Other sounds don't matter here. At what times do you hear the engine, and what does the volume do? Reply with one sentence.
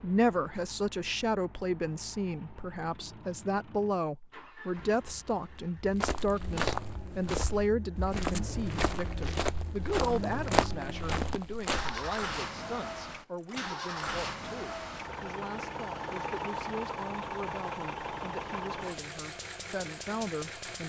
You can hear the engine from 0.0 to 20.8 s, getting louder.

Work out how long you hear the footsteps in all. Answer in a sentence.
You can hear the footsteps for 6 seconds altogether.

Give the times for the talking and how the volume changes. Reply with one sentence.
You can hear the talking from 0.0 to 20.8 s, getting quieter.